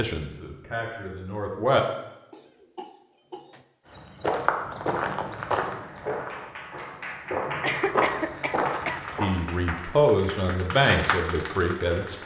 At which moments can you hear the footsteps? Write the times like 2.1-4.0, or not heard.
3.9-9.2.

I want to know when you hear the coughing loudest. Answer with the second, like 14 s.
8 s.